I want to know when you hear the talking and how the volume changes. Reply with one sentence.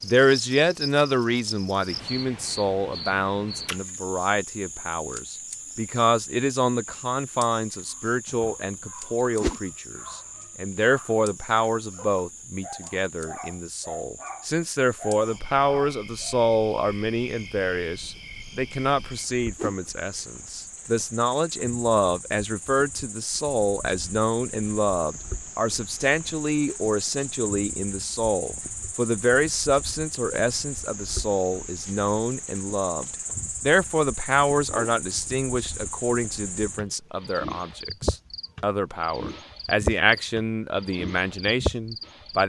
You can hear the talking from 0.0 to 42.4 s, at a steady volume.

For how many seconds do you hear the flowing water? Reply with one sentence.
You can't hear the flowing water here.